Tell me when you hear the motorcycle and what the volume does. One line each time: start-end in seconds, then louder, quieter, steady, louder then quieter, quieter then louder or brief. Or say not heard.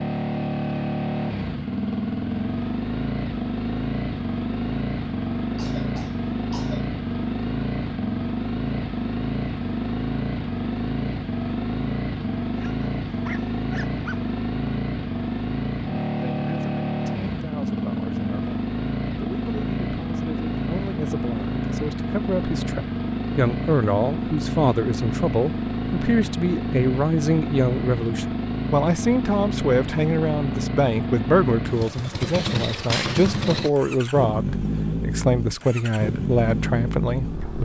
0.0-37.6 steady.